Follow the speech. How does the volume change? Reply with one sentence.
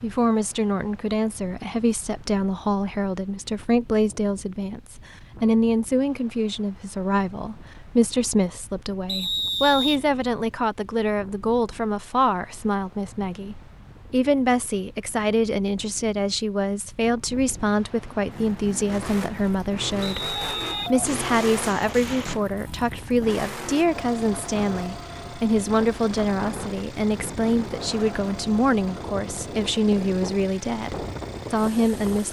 The loudness of the speech stays about the same.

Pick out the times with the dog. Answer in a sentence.
You can't hear the dog here.